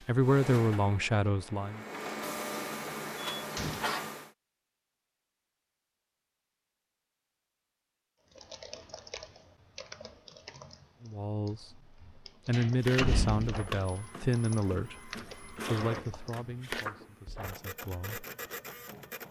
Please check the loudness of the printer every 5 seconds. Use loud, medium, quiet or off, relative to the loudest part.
loud, off, loud, loud.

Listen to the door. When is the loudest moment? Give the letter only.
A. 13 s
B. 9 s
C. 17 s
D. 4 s
A.